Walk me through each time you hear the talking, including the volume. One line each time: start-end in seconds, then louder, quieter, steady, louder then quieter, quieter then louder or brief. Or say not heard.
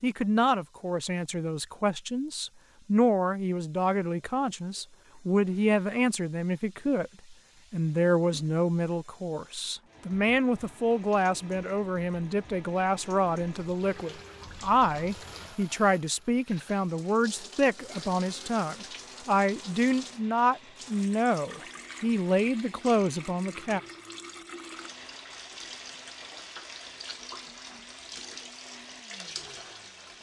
0.0-23.8 steady.